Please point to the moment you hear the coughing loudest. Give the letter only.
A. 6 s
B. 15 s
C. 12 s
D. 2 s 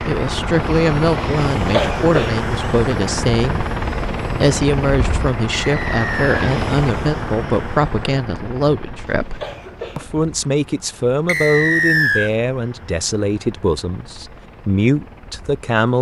D.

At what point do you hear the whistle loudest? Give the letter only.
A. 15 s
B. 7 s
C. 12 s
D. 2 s
C.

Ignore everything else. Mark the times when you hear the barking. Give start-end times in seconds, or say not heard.
not heard.